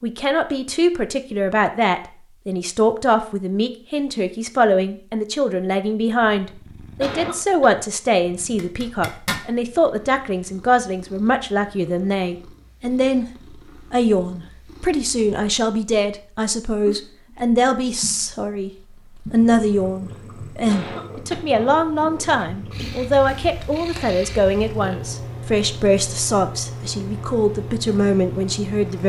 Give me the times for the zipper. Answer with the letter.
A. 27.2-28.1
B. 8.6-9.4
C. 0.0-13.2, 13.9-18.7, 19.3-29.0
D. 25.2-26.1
B.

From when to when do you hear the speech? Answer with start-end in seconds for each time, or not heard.
0.0-13.2, 13.9-18.7, 19.3-29.0.